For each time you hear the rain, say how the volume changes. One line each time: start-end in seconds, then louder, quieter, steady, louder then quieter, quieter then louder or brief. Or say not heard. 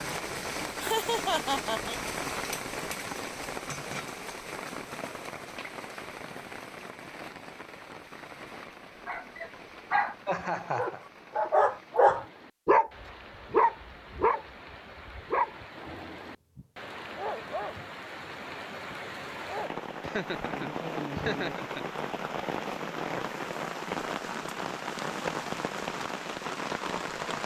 0.0-27.4 quieter then louder.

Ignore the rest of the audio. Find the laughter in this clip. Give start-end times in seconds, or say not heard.
0.8-2.0, 10.2-11.0, 20.0-21.9.